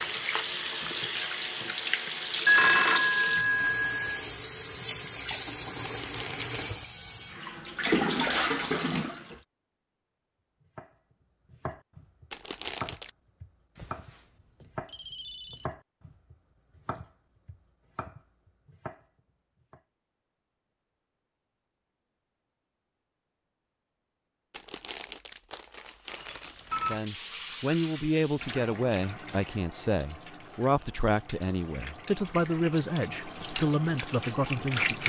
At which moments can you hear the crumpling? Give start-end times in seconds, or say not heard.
5.8-6.9, 12.3-13.1, 24.5-27.0.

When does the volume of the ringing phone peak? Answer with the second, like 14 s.
3 s.